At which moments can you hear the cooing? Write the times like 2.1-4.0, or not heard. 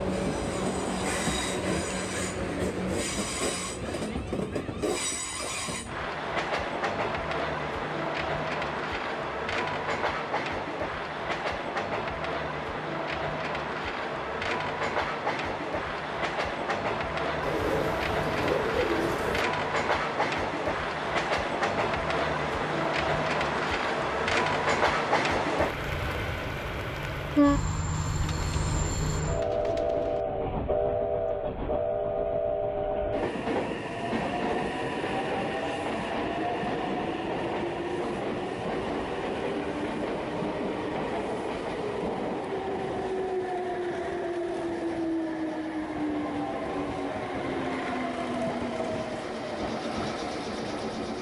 17.4-19.4, 28.2-30.2.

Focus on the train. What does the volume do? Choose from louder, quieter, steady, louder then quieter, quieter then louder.
steady.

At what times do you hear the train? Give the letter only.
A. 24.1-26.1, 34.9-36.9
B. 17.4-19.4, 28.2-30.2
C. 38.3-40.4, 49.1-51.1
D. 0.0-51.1
D.